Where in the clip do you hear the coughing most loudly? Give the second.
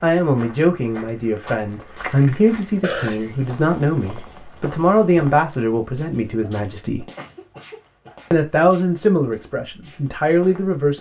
3 s.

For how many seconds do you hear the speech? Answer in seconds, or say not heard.
10 s.